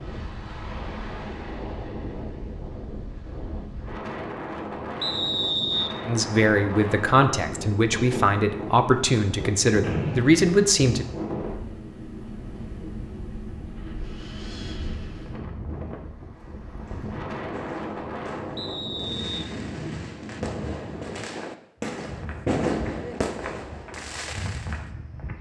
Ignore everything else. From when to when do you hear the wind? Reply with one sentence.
The wind can be heard from 0.0 to 21.3 s.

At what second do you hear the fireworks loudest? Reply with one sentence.
The loudest moment of the fireworks is at 23 seconds.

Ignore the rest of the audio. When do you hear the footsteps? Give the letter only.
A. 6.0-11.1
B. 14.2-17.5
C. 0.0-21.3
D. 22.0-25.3
D.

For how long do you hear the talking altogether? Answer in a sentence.
The talking can be heard for 5 seconds in total.